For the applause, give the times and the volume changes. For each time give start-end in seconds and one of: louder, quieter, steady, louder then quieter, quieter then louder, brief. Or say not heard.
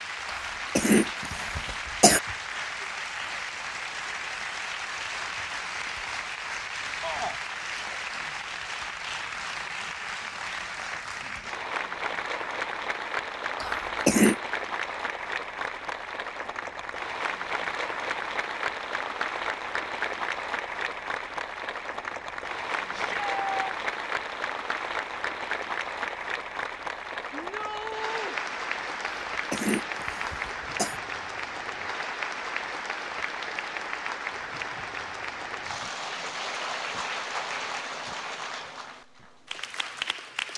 0.0-40.5 steady.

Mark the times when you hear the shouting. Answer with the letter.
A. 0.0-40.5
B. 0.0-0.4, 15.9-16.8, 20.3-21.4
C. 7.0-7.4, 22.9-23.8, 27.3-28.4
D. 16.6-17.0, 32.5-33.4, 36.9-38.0
C.